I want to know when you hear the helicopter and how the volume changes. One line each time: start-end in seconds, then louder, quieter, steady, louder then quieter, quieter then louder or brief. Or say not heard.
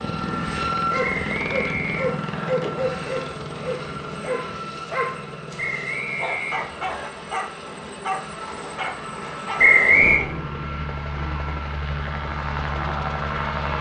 0.0-13.7 quieter then louder.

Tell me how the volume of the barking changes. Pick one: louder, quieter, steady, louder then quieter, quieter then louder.
quieter.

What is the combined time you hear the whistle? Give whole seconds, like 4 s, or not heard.
4 s.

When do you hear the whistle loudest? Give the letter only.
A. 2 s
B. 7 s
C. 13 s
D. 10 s
D.